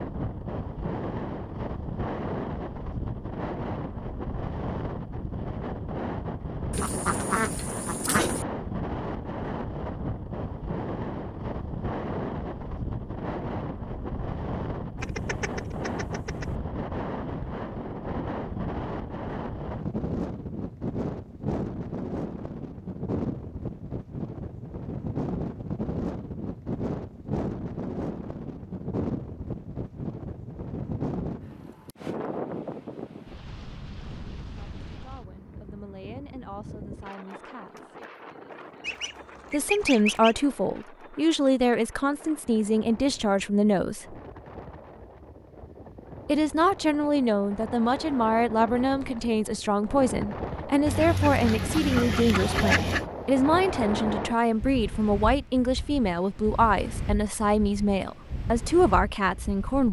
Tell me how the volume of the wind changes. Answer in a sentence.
The volume of the wind goes down, then up.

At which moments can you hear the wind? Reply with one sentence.
You can hear the wind from 0.0 to 59.8 s.